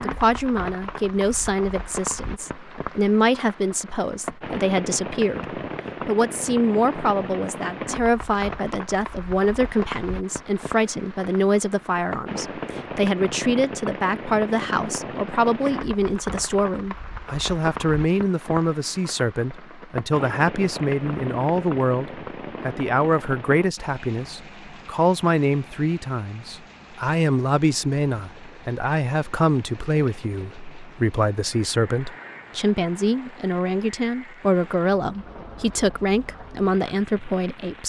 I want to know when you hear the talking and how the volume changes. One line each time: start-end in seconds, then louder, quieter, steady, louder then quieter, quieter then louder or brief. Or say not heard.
0.0-37.8 steady.